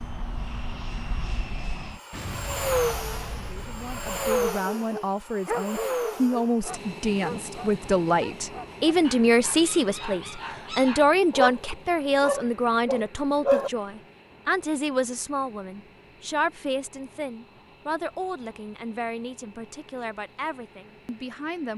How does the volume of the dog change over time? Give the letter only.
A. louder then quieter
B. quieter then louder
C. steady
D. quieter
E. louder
B.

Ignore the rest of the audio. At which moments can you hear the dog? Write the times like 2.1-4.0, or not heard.
4.5-13.7.